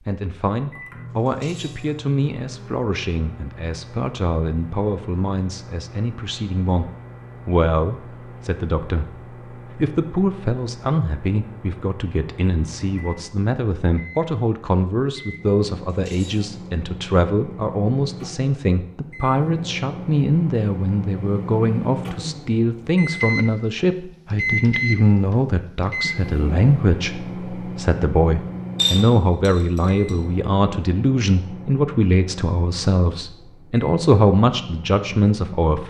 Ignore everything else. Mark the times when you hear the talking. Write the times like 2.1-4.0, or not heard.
0.0-35.8.